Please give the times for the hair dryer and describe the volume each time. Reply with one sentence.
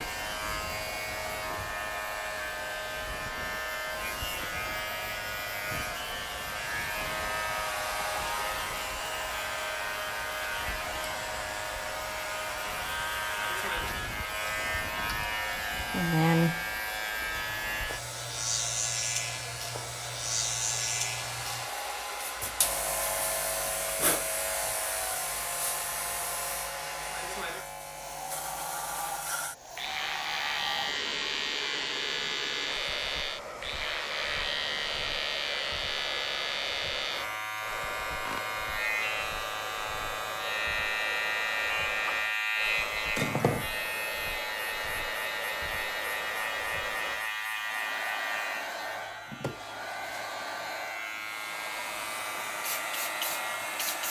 The hair dryer can be heard from 0.0 to 54.0 s, at a steady volume.